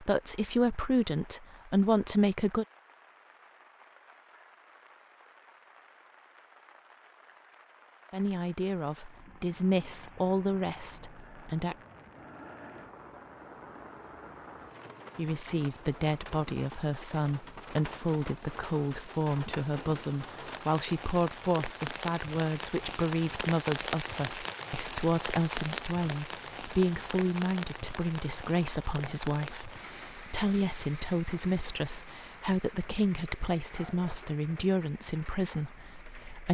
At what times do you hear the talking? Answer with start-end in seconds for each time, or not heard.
0.0-2.6, 8.1-11.8, 15.2-36.4.